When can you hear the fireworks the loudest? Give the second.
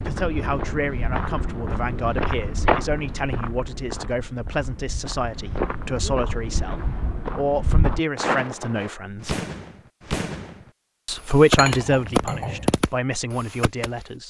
12 s.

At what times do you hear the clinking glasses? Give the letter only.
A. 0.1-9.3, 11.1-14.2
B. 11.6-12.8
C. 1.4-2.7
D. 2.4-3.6
B.